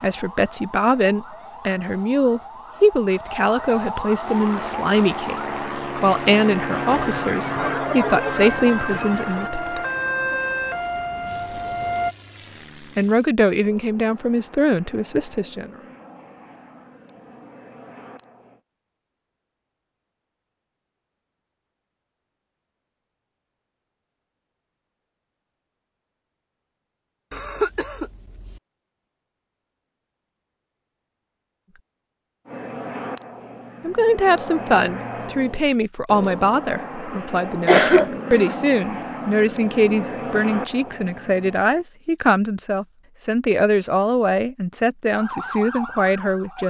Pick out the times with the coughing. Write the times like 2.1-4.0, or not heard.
6.8-9.5, 27.3-28.6, 37.6-38.5.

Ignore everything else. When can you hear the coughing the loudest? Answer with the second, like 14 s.
38 s.